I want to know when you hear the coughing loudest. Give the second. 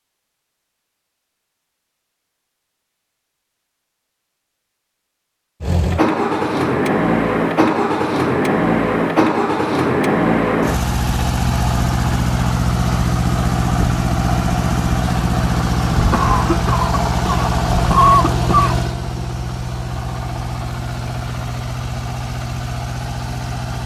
18 s.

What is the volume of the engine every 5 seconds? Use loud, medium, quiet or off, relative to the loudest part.
off, loud, loud, loud, medium.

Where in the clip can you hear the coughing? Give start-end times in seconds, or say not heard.
16.1-18.8.